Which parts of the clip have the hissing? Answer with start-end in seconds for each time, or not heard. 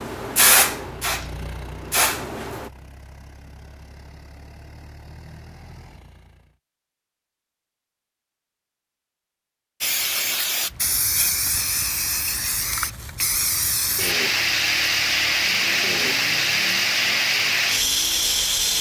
0.0-2.7, 9.8-18.7.